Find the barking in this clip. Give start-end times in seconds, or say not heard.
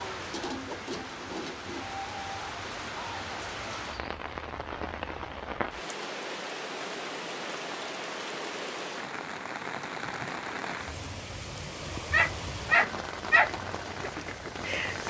12.1-15.0.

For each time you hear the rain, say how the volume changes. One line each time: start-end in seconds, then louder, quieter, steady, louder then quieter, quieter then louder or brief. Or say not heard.
0.0-15.0 steady.